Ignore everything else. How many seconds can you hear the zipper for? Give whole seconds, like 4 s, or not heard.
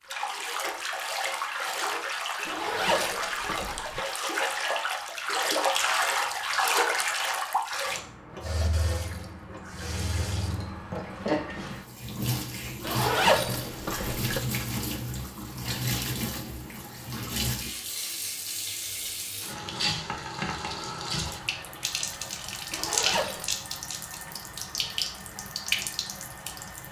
4 s.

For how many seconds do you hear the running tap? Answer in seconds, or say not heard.
27 s.